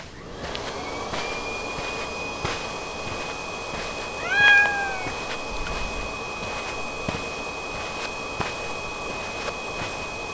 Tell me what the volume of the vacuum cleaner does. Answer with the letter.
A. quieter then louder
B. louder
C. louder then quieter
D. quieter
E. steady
E.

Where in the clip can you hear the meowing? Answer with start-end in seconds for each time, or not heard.
4.2-6.1.